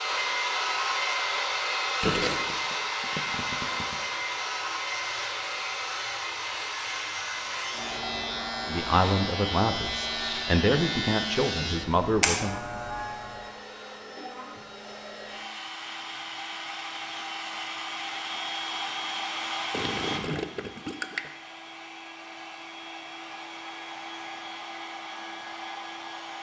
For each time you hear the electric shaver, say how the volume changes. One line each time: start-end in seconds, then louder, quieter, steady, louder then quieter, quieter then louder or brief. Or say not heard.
0.0-13.6 louder.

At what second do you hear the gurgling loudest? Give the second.
2 s.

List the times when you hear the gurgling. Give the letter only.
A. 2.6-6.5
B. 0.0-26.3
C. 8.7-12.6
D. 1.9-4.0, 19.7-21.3
D.